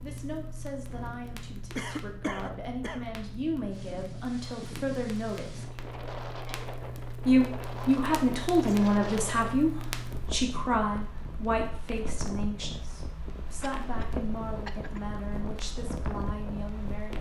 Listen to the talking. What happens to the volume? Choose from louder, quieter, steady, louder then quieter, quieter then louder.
louder then quieter.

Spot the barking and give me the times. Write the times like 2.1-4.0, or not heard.
not heard.